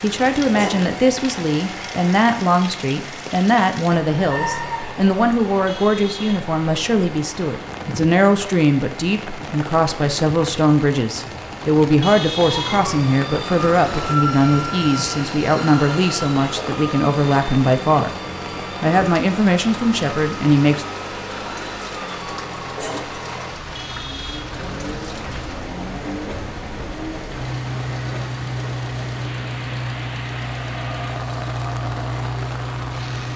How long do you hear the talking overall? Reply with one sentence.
The talking can be heard for 21 seconds in total.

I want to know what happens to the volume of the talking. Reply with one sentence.
The volume of the talking stays about the same.